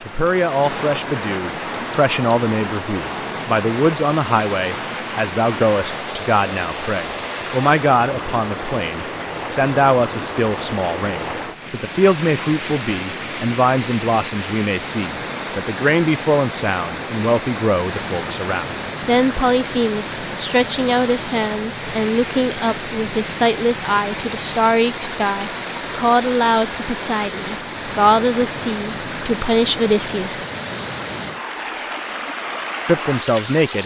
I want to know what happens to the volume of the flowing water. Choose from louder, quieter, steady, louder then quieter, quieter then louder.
steady.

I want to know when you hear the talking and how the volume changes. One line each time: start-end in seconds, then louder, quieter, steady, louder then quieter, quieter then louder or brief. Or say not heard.
0.1-30.4 steady
32.9-33.8 brief.